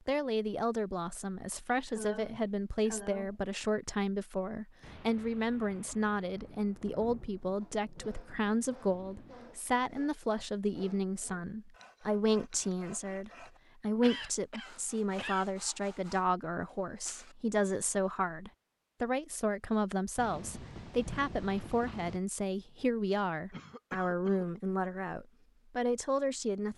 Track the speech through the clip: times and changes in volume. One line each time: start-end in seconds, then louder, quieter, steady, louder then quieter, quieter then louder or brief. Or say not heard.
0.1-26.7 steady.